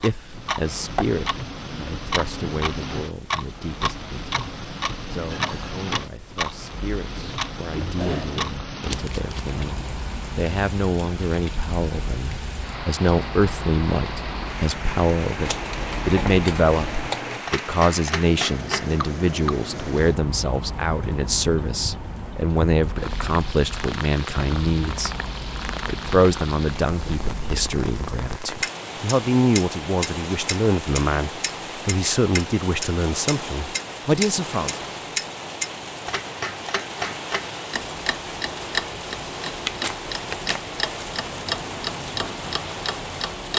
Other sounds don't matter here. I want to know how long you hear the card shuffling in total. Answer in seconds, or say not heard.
4 s.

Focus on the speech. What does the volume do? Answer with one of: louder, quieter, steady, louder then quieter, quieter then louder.
louder.